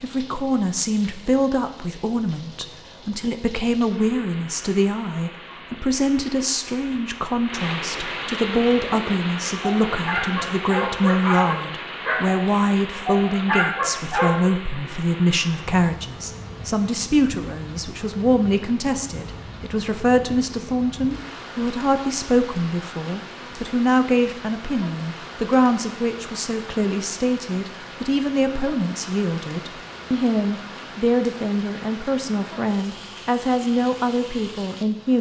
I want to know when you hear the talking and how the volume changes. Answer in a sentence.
You can hear the talking from 0.0 to 35.1 s, at a steady volume.